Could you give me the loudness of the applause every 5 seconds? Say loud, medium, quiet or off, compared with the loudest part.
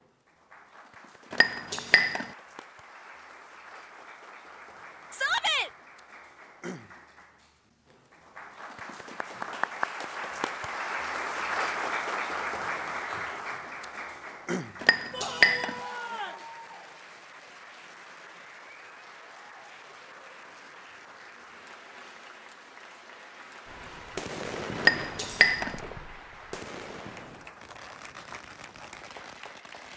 quiet, medium, loud, quiet, quiet, quiet.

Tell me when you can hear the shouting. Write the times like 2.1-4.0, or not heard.
5.1-5.7, 15.1-16.4.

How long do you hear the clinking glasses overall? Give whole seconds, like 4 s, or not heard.
3 s.